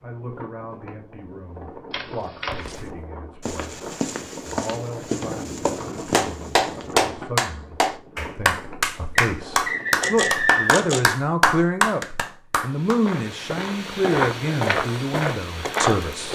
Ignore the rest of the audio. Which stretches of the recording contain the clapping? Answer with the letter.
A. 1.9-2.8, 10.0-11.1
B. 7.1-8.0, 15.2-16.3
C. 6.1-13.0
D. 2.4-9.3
C.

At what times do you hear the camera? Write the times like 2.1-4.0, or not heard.
1.9-2.8, 10.0-11.1.